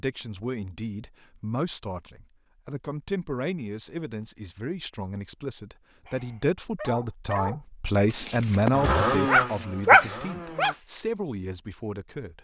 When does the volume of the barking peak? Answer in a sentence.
The volume of the barking peaks at 10 seconds.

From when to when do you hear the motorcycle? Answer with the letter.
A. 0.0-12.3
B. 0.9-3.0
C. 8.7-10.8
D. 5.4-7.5
C.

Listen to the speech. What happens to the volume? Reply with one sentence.
The volume of the speech goes up, then down.